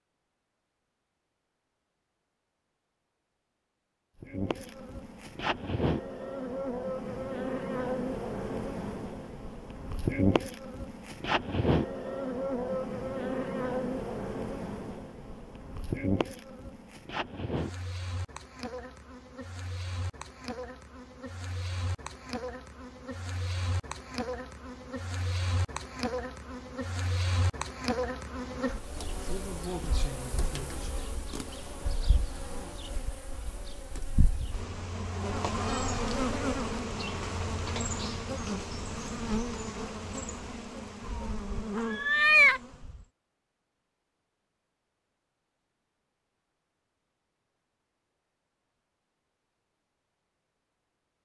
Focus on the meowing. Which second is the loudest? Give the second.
42 s.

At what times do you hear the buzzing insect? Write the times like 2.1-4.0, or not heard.
4.2-43.0.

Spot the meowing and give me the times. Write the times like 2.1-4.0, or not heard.
41.0-42.6.